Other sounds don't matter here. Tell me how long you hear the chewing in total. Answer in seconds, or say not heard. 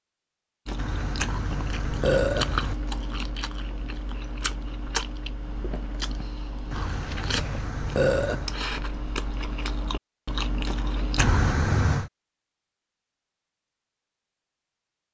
11 s.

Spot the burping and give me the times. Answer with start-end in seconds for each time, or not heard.
0.8-2.8, 6.7-8.6, 11.2-12.1.